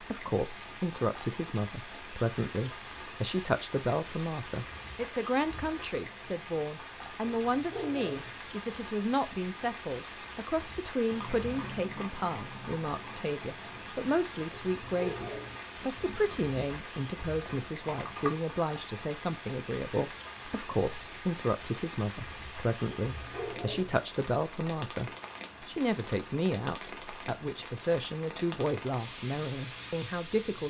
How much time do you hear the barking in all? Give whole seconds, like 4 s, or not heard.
3 s.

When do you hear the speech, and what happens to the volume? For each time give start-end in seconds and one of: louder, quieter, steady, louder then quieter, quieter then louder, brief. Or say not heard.
0.0-30.6 steady.